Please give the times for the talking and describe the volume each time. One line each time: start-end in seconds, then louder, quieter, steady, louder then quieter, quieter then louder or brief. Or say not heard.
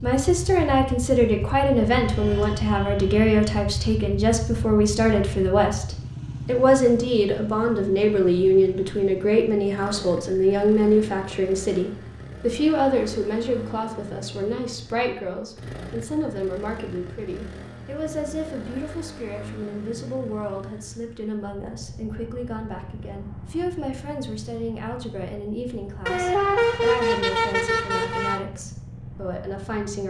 0.0-30.0 quieter.